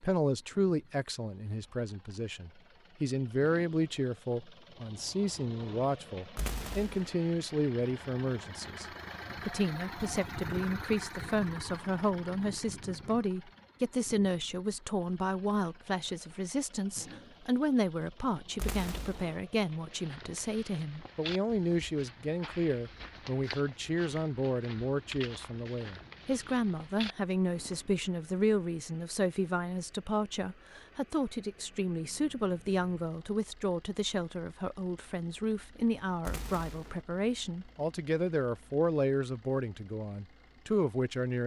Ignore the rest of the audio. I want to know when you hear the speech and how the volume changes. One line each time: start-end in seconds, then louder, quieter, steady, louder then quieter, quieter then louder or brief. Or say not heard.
0.0-41.4 steady.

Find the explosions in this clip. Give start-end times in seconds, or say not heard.
6.3-7.2, 18.6-19.4, 36.2-37.0.